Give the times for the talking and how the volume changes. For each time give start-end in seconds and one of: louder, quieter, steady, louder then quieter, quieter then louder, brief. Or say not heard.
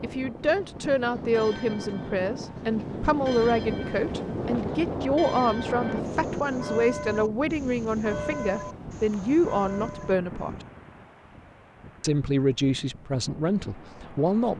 0.0-10.6 steady
12.0-14.5 brief.